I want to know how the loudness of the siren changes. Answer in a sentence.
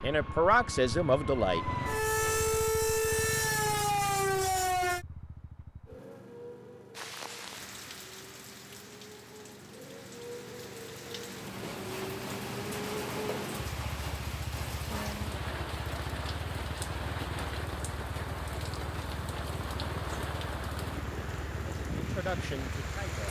The loudness of the siren goes up.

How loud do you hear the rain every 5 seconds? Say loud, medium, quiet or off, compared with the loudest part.
off, medium, loud, loud, loud.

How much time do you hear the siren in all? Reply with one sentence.
You can hear the siren for 5 seconds altogether.